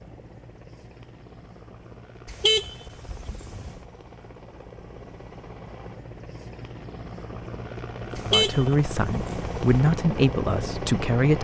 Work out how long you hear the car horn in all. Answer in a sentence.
You can hear the car horn for 3 seconds altogether.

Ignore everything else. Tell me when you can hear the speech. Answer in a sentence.
The speech can be heard from 8.2 to 11.3 s.